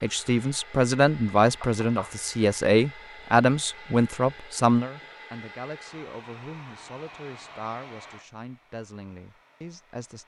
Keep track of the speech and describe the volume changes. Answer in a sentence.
The loudness of the speech goes down.